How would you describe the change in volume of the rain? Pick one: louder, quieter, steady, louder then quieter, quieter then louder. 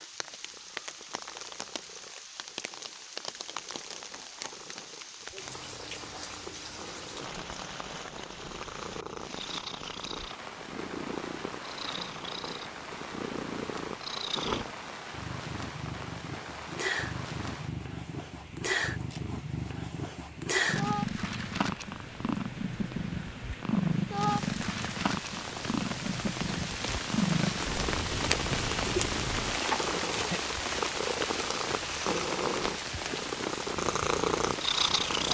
louder.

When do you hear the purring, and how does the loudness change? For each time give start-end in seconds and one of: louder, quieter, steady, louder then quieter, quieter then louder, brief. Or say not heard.
0.1-35.2 louder.